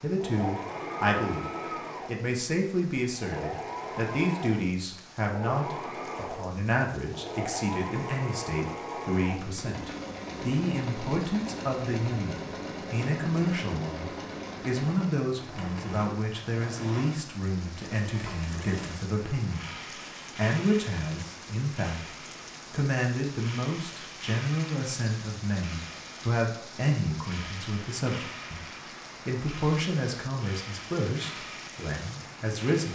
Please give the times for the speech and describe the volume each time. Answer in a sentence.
The speech can be heard from 0.0 to 32.9 s, at a steady volume.